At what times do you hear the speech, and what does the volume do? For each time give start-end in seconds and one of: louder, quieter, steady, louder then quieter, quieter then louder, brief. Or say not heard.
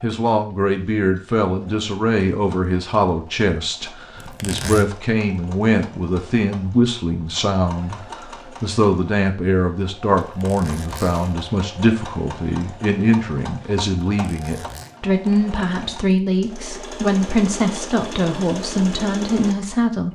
0.0-20.0 steady.